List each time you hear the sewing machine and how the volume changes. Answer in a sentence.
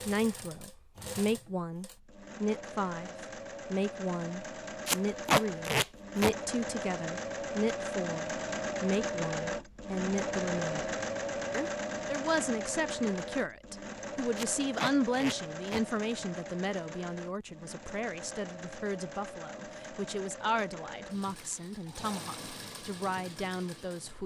The sewing machine can be heard from 0.0 to 24.2 s, getting louder then quieter.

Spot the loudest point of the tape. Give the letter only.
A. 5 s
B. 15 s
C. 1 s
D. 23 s
A.